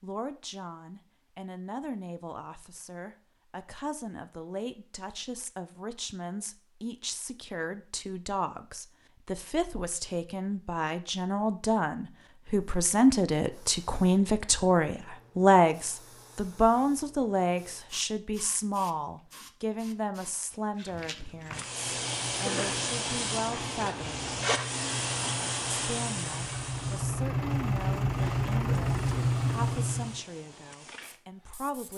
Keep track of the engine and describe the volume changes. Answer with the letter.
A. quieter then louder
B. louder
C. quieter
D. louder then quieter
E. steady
B.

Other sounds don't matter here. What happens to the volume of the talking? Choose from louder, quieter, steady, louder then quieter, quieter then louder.
louder then quieter.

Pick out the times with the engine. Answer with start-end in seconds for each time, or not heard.
21.8-30.2.